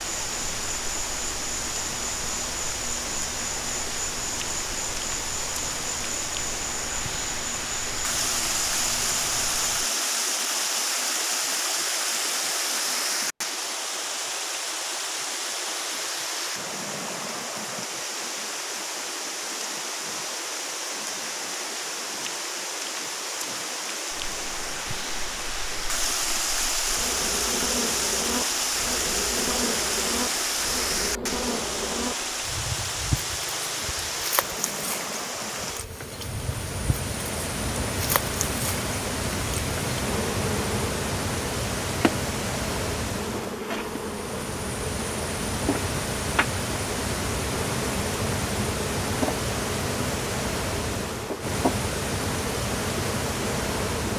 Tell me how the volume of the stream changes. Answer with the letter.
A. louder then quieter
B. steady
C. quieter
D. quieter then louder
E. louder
B.